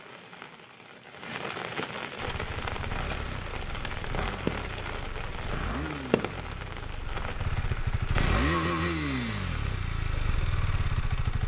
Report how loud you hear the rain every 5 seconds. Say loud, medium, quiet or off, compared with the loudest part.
loud, loud, off.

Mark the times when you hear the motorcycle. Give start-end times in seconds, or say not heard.
2.1-11.4.